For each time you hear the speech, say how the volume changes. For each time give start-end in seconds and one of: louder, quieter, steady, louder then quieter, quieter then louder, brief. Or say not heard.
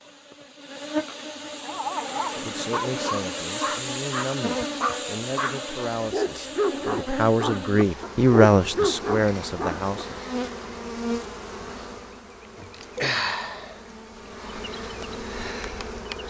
2.4-10.2 louder.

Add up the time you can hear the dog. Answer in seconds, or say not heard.
8 s.